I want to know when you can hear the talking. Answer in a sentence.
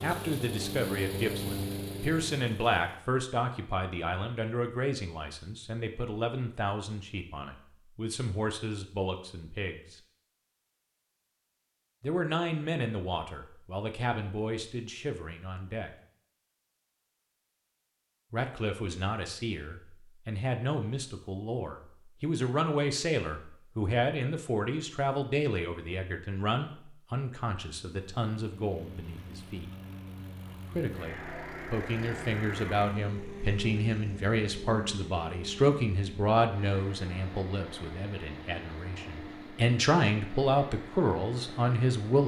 You can hear the talking from 0.0 to 9.9 s, from 12.0 to 15.9 s, from 18.3 to 29.7 s and from 30.8 to 42.2 s.